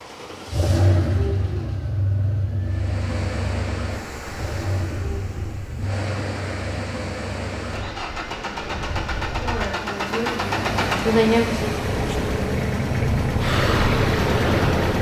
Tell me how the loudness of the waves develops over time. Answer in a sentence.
The volume of the waves goes up.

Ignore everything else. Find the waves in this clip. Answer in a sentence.
The waves can be heard from 2.6 to 14.9 s.